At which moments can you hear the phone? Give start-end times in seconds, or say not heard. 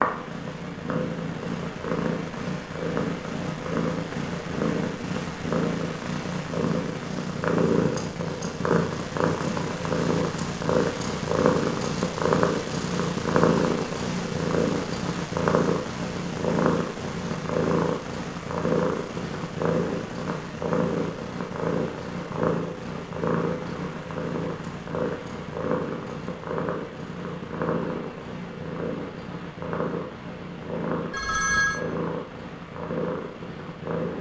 31.1-31.8.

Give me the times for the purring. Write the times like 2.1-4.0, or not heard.
0.0-34.1.